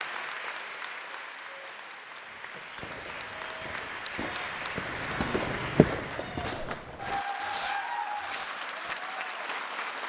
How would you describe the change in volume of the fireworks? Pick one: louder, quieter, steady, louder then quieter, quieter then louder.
louder.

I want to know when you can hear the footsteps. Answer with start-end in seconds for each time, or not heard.
4.6-6.8.